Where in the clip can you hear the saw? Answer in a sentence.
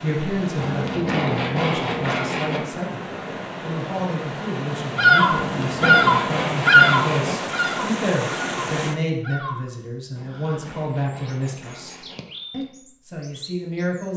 You can hear the saw from 0.6 to 2.6 s, from 5.3 to 7.3 s and from 10.2 to 12.2 s.